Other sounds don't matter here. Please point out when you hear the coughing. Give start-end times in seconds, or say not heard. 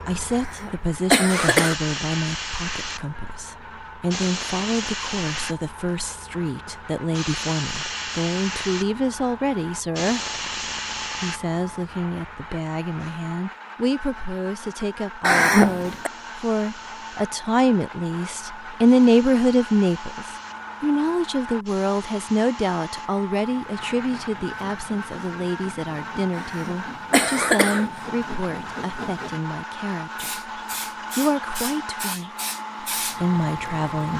0.3-1.8, 15.2-16.1, 26.4-27.9.